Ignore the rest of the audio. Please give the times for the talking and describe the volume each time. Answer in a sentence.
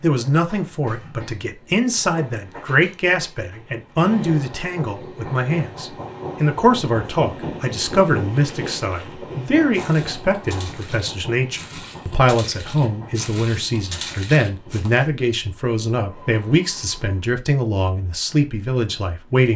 The talking can be heard from 0.0 to 19.5 s, at a steady volume.